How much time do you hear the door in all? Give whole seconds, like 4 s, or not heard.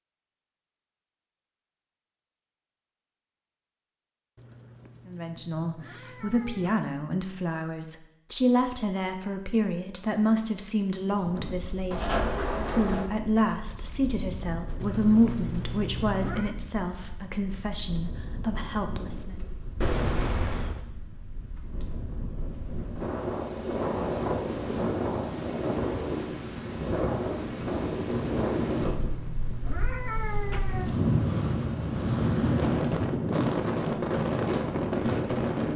2 s.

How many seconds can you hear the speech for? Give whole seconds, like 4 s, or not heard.
14 s.